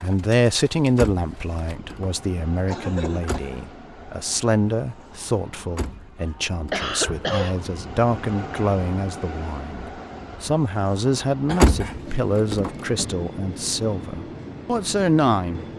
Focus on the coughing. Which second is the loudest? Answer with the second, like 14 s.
7 s.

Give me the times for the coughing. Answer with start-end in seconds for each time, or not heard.
2.6-3.6, 6.2-7.6, 11.4-12.2.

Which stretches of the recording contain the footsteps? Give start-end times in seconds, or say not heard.
not heard.